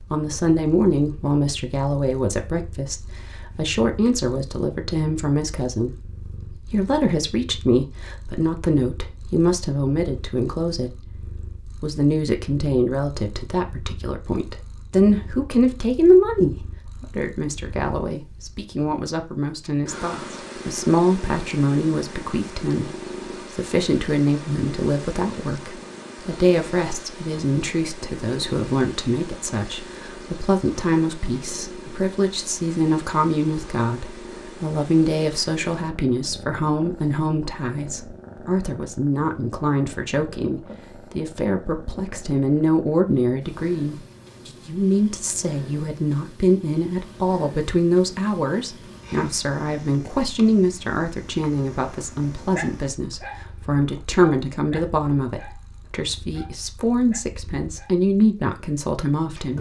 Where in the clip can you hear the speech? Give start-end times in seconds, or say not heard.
0.0-22.9, 23.5-59.5.